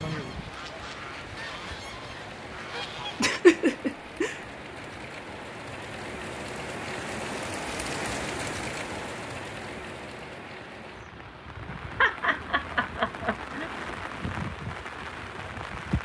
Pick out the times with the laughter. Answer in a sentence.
The laughter can be heard from 3.2 to 4.3 s and from 11.9 to 13.7 s.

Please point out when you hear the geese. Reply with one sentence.
You can hear the geese from 0.0 to 3.2 s.